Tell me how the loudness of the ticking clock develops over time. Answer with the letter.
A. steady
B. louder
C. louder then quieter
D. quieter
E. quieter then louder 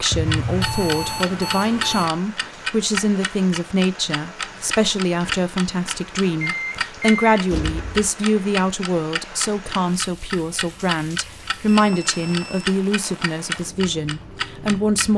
A.